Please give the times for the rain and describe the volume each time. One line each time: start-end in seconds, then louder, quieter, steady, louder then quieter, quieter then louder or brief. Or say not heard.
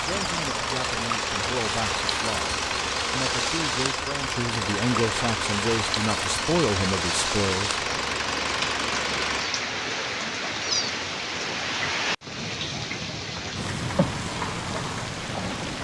0.0-15.8 steady.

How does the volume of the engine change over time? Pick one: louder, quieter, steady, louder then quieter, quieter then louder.
steady.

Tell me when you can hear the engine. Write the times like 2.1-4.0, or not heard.
0.0-9.4.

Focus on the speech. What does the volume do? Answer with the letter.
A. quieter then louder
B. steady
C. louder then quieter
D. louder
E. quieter
D.